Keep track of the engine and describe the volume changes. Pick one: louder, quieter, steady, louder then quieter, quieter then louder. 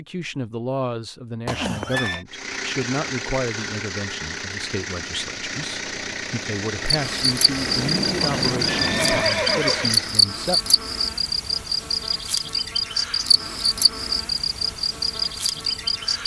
steady.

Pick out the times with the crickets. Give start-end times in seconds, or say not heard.
6.8-16.2.